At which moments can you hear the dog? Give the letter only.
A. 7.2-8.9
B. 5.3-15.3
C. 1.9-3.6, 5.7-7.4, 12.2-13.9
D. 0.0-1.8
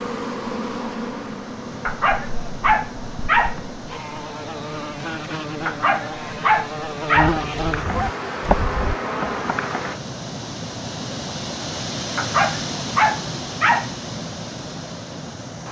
C.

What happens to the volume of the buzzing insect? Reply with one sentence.
The loudness of the buzzing insect goes down, then up.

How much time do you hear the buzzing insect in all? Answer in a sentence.
The buzzing insect can be heard for 10 seconds in total.